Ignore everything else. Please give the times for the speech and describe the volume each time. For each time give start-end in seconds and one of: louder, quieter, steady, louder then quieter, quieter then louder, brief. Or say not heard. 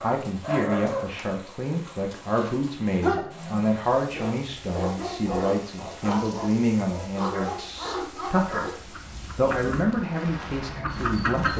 0.0-8.7 steady
9.3-11.5 brief.